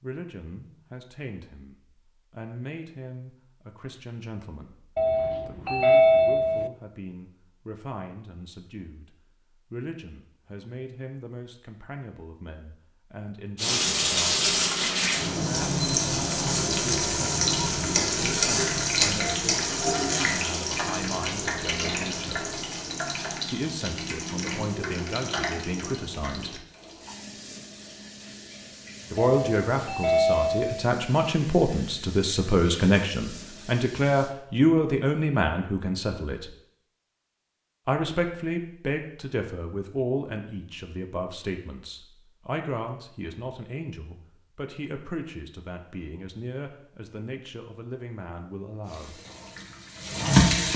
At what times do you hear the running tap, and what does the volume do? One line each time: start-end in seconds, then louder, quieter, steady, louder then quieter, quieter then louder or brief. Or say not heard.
13.6-34.4 quieter
48.8-50.7 brief.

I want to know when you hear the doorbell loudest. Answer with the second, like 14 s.
6 s.